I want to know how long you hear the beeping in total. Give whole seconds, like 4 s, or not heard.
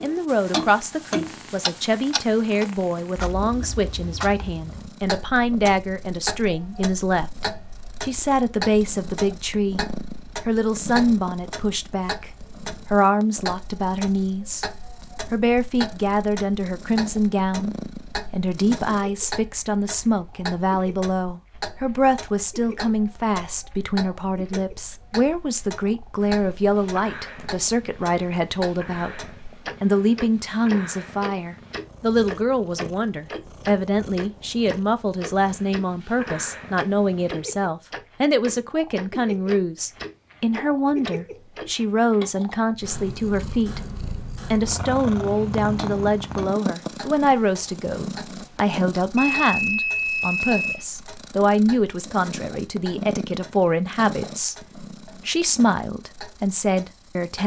2 s.